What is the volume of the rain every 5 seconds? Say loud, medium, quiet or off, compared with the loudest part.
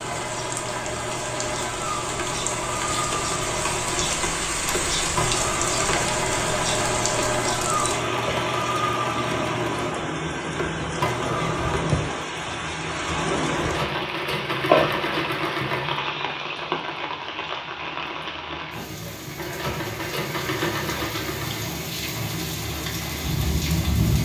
loud, loud, loud, medium, loud.